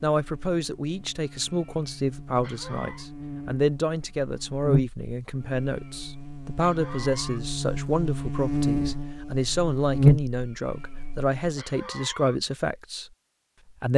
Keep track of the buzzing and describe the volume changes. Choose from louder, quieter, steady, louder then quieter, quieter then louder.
louder.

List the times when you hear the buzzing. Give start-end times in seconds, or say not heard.
0.1-11.3.